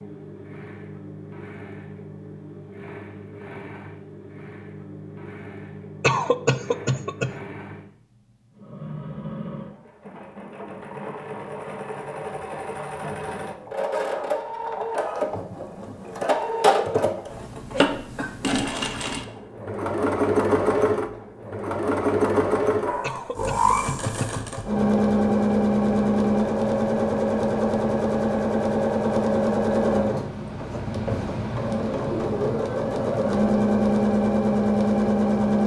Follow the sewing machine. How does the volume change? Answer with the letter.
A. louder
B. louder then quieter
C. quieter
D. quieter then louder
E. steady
A.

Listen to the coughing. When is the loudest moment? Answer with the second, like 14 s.
6 s.